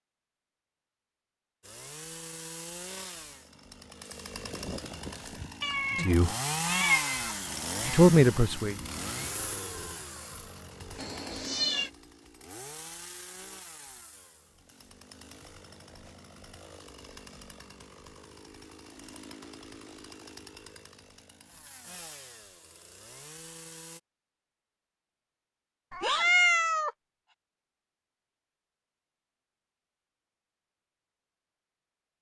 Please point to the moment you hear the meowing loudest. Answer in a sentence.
The loudest moment of the meowing is at 26 seconds.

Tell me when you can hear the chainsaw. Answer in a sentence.
You can hear the chainsaw from 1.6 to 24.0 s.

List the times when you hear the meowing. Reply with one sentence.
The meowing can be heard from 5.6 to 7.3 s, from 10.9 to 11.9 s and from 25.9 to 26.9 s.